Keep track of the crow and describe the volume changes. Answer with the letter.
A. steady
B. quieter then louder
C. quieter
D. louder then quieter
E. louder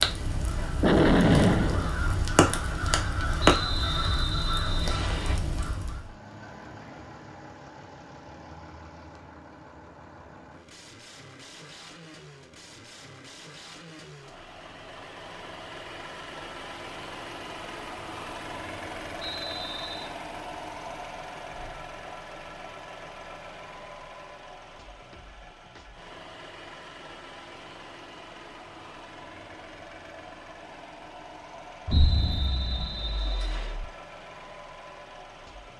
D.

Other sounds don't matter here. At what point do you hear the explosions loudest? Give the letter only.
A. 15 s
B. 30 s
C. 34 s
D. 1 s
D.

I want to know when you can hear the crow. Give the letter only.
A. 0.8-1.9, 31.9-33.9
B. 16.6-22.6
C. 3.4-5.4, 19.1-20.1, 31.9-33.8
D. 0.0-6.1
D.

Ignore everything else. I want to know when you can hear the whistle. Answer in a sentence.
You can hear the whistle from 3.4 to 5.4 s, from 19.1 to 20.1 s and from 31.9 to 33.8 s.